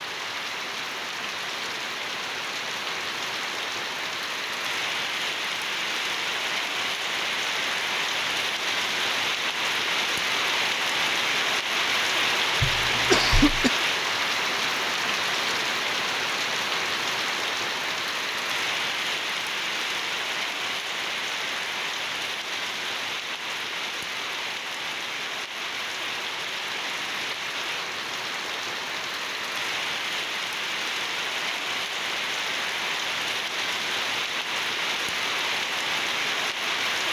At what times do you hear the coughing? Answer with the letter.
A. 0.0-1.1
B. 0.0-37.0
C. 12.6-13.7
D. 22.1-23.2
C.